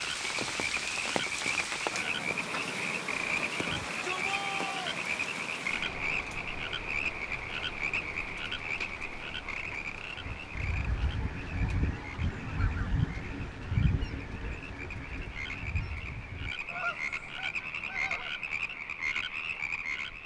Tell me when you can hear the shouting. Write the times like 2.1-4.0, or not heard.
3.6-4.9.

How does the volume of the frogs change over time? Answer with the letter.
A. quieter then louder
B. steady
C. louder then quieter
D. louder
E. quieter
A.